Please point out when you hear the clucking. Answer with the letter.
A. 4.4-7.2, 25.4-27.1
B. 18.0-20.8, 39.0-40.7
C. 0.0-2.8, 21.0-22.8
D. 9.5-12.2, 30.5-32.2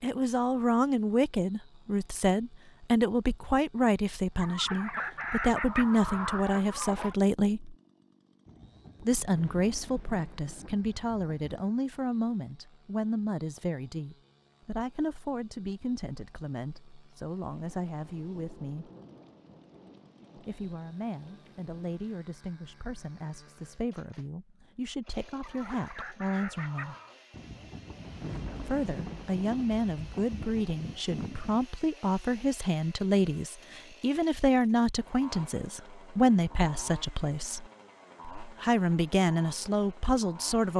A.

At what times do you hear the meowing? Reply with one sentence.
The meowing can't be heard in this clip.